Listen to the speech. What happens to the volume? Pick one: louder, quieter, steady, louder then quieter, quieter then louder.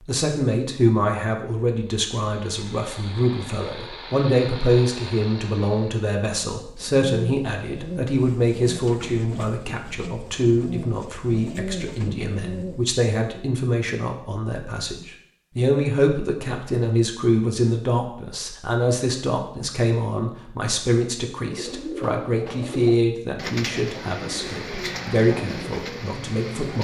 steady.